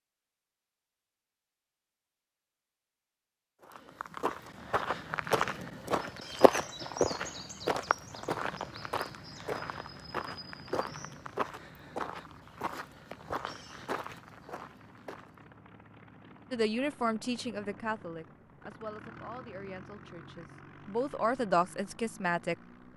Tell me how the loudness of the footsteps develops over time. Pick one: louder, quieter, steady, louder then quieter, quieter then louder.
quieter.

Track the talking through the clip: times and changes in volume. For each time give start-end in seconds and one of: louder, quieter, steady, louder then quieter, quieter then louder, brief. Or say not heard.
16.5-22.9 quieter then louder.